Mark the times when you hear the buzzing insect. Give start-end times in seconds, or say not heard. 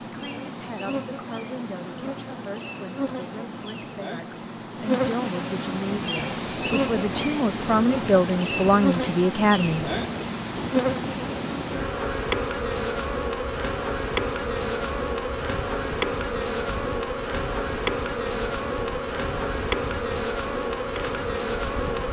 0.0-22.0.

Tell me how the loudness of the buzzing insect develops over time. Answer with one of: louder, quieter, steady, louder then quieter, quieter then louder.
louder.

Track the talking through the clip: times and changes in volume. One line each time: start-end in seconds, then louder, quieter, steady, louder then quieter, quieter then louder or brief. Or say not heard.
0.0-9.8 louder.